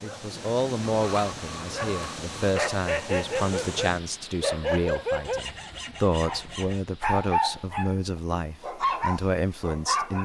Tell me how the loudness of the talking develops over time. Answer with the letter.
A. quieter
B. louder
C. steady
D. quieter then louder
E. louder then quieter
C.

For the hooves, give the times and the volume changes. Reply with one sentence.
You can't hear the hooves here.